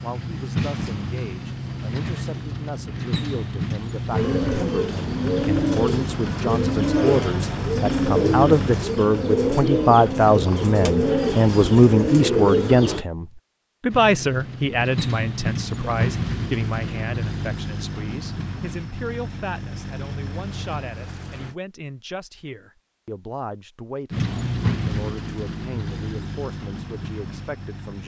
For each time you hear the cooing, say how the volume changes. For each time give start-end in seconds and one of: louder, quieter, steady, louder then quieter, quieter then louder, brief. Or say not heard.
4.1-13.1 steady.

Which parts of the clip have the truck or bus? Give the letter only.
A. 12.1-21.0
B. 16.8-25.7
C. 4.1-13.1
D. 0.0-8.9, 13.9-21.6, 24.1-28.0
D.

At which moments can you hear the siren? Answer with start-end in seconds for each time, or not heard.
not heard.